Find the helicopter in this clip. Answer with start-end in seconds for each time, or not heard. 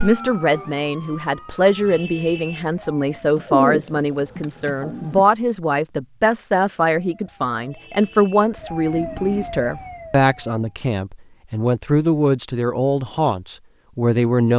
not heard.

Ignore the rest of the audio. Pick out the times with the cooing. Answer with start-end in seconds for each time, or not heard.
3.4-5.2.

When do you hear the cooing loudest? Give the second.
4 s.